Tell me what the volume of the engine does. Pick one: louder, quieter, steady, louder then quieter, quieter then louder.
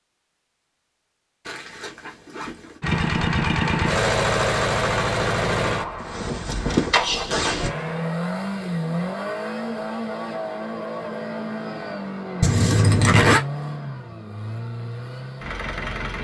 quieter.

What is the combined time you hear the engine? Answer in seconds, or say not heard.
13 s.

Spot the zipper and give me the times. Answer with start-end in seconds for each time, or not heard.
1.4-2.8, 6.0-7.7, 12.4-13.4.